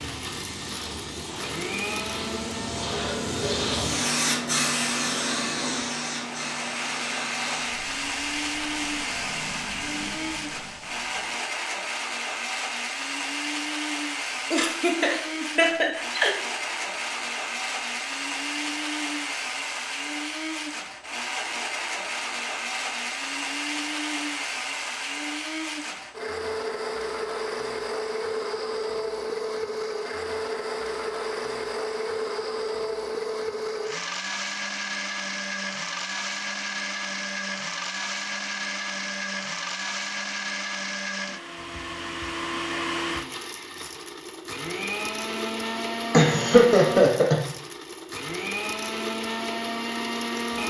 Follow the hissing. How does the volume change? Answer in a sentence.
The loudness of the hissing goes up, then down.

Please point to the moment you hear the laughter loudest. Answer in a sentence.
The volume of the laughter peaks at 47 seconds.